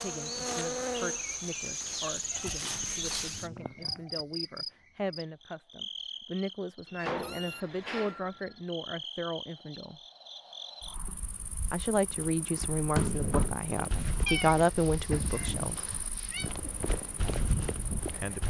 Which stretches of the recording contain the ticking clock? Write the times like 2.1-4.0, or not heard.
not heard.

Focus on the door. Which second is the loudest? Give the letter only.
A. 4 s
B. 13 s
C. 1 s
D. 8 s
B.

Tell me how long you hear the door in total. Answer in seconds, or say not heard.
3 s.